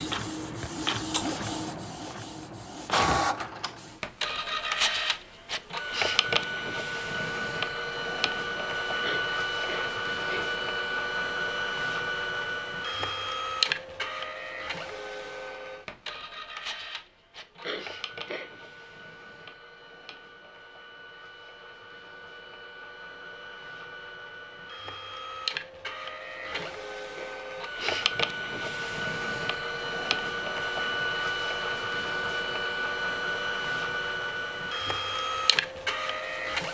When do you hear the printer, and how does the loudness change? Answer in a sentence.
You can hear the printer from 0.0 to 36.7 s, getting quieter then louder.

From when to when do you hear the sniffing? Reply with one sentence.
You can hear the sniffing from 9.0 to 10.5 s, from 17.6 to 18.5 s and from 26.5 to 28.0 s.